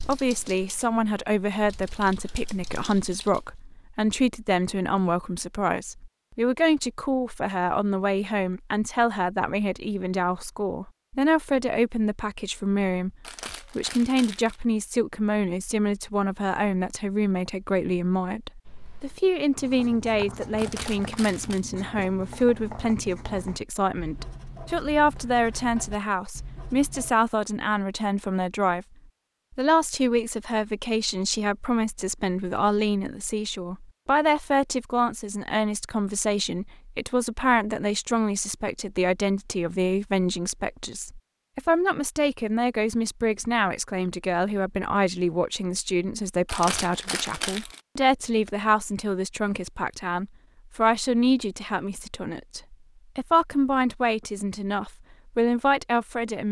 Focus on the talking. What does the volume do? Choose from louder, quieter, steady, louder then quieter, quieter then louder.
steady.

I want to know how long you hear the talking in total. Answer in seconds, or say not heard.
55 s.